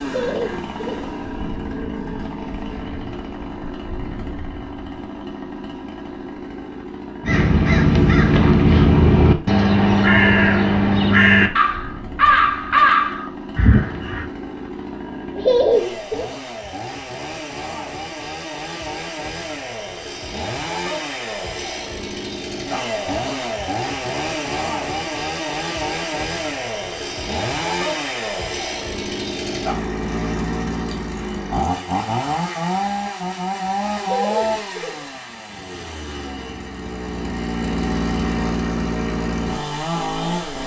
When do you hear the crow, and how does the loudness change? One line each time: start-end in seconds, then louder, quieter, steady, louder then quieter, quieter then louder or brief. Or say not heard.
7.2-14.2 steady.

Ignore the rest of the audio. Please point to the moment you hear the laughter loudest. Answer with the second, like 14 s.
16 s.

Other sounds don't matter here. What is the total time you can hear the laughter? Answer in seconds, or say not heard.
3 s.